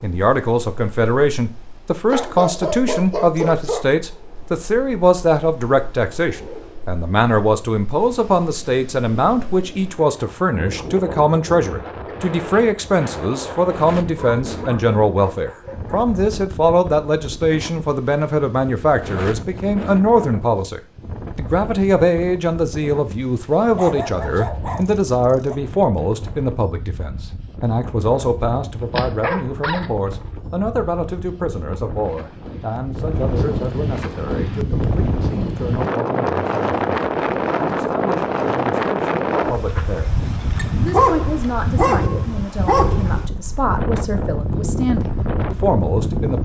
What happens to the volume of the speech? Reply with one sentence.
The volume of the speech goes down.